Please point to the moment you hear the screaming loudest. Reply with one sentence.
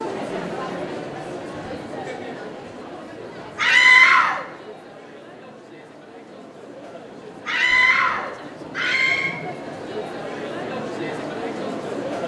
The volume of the screaming peaks at 4 seconds.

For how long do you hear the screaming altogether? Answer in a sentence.
The screaming can be heard for 3 seconds in total.